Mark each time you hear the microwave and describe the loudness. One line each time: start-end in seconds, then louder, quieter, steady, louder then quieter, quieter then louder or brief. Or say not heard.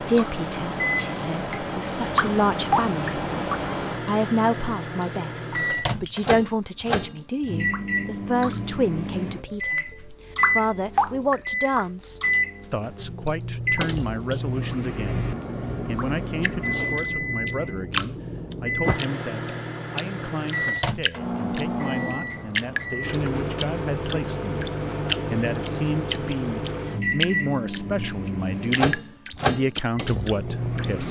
0.0-31.0 steady.